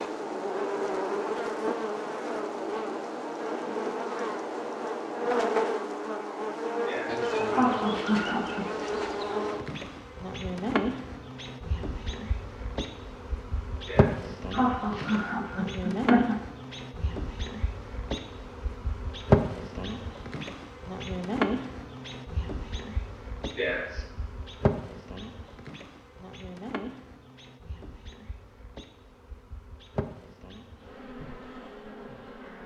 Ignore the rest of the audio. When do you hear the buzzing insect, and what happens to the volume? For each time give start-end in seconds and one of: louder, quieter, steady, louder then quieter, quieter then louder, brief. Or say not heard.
0.0-32.6 quieter.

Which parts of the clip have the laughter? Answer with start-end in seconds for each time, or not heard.
6.8-8.7, 13.8-16.4, 23.6-24.1.